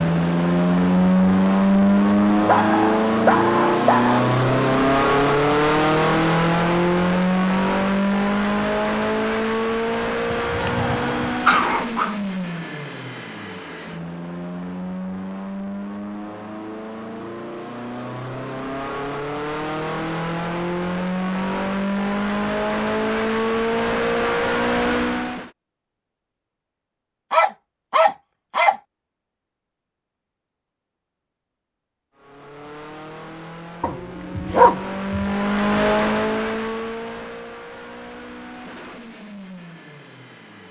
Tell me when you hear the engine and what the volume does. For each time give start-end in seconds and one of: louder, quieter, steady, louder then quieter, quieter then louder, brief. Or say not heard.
0.0-25.5 quieter then louder
32.1-40.6 louder then quieter.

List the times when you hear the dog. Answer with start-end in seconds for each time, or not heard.
2.5-4.2, 10.3-12.2, 27.3-28.8, 33.8-35.3.